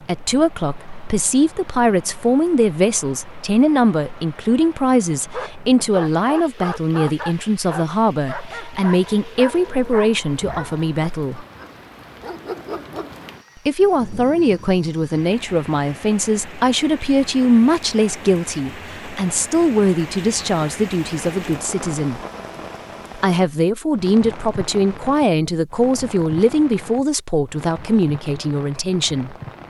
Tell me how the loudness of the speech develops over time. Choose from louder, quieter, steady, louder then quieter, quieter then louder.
steady.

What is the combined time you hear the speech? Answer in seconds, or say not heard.
26 s.